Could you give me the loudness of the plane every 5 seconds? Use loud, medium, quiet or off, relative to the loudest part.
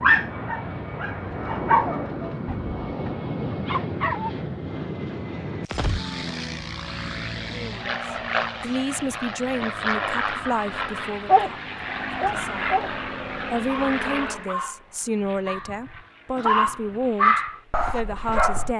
loud, loud, loud, quiet.